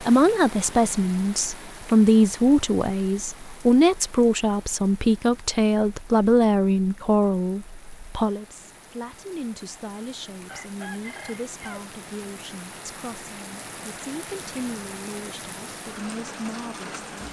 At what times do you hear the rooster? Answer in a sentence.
The rooster can be heard from 10.4 to 11.9 s.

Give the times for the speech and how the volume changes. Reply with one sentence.
You can hear the speech from 0.0 to 16.9 s, getting quieter.